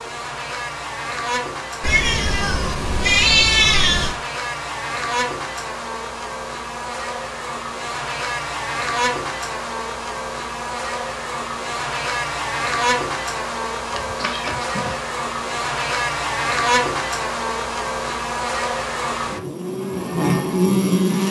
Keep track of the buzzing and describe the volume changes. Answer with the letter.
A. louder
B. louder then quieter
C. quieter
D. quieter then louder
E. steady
A.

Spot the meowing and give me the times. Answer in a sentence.
The meowing can be heard from 1.8 to 4.2 s and from 13.9 to 14.9 s.